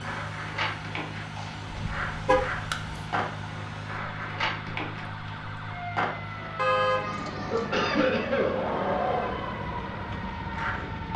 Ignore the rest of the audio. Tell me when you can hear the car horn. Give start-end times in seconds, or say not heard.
1.7-3.0, 6.5-7.7.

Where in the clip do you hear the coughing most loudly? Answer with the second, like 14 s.
8 s.